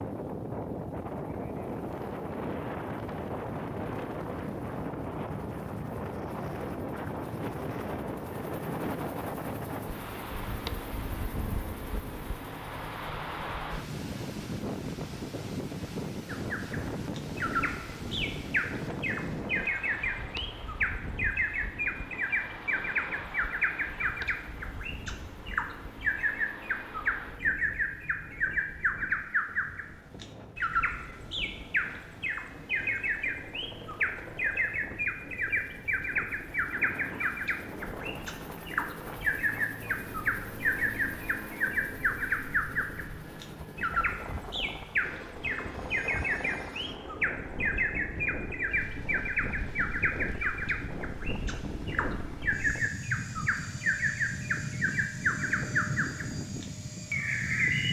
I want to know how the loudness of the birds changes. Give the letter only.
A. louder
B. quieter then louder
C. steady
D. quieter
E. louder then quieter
C.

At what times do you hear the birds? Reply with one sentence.
The birds can be heard from 16.2 to 57.8 s.